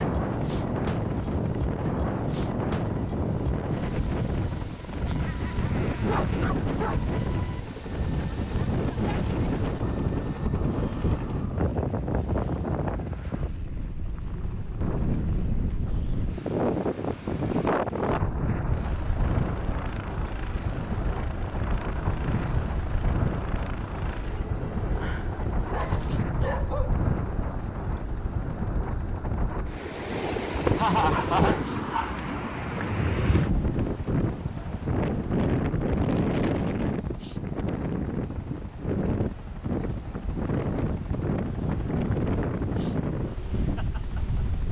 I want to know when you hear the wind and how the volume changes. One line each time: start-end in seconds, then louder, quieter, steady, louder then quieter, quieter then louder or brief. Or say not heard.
0.0-44.6 steady.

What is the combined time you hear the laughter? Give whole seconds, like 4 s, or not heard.
2 s.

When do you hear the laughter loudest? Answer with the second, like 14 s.
31 s.